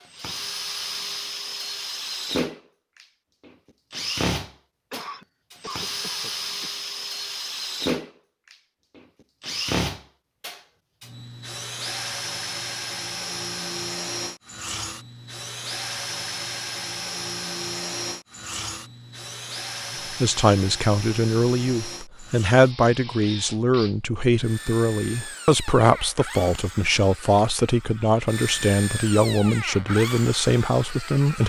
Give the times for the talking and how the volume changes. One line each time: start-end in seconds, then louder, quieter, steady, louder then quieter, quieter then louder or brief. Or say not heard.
20.1-31.4 steady.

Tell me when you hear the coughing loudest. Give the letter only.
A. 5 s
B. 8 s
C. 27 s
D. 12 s
A.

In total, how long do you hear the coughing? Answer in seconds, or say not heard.
2 s.